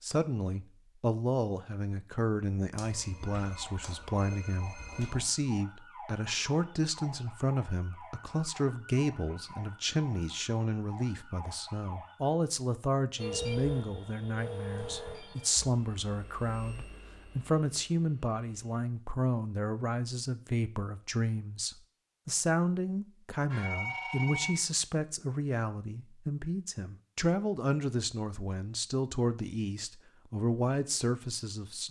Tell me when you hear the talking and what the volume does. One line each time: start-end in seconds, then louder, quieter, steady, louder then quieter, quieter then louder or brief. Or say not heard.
0.0-31.8 steady.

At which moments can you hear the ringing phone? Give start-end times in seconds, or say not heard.
2.8-5.2, 13.2-15.7, 23.5-24.7.